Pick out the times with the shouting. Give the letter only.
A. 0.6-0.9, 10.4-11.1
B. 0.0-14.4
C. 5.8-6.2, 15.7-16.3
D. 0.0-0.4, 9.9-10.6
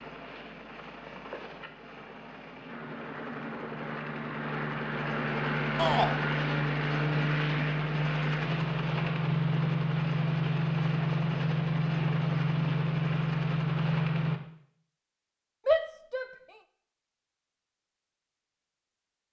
C.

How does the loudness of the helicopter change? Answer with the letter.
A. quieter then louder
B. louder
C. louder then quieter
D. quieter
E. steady
B.